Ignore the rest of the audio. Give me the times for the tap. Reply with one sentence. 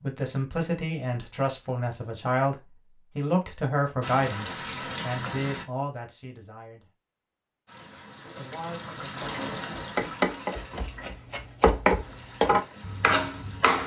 You can hear the tap from 4.0 to 5.7 s and from 7.7 to 13.8 s.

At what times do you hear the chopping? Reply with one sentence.
The chopping can be heard from 9.2 to 13.8 s.